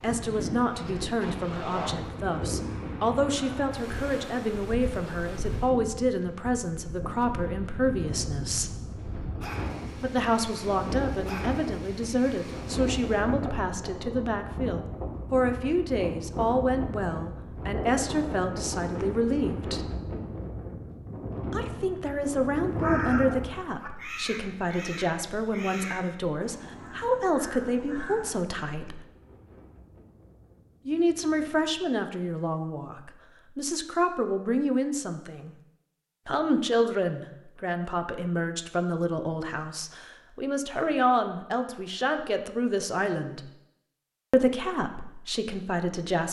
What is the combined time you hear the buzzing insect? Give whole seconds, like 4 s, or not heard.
not heard.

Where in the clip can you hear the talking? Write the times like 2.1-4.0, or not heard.
0.0-8.8, 9.9-19.9, 21.5-29.0, 30.9-35.5, 36.2-43.5, 44.3-46.2.